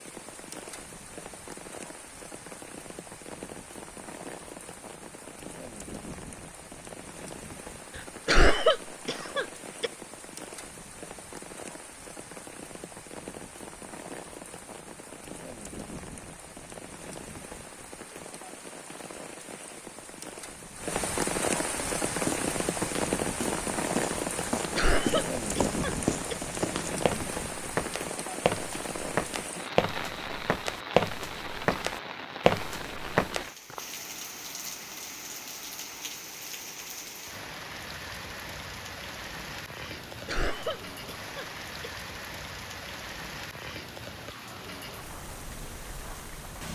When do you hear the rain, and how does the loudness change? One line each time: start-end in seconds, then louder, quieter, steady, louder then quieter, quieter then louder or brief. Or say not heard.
0.0-46.6 louder then quieter.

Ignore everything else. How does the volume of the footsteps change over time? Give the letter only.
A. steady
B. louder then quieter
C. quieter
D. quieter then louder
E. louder
E.